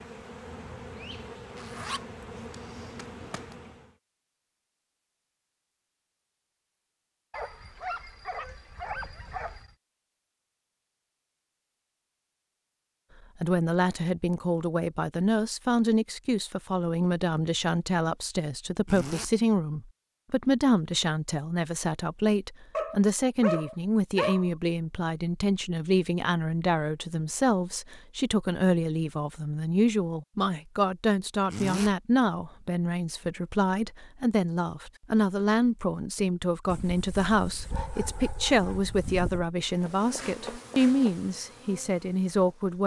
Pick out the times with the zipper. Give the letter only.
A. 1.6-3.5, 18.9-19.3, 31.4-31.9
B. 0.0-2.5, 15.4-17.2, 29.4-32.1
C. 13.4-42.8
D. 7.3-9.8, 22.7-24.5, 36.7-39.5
A.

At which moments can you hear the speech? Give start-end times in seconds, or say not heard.
13.4-42.8.